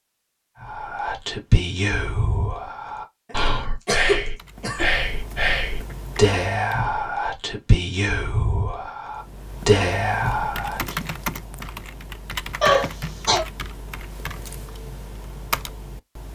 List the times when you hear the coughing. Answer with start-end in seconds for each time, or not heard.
3.3-4.8, 12.6-13.4.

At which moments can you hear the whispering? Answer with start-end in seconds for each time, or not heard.
0.6-10.9.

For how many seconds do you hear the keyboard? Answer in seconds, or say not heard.
10 s.